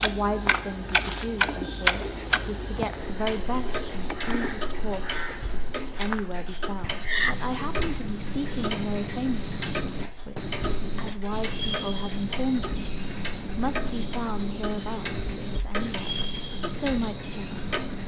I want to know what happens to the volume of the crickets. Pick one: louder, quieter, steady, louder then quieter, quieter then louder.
steady.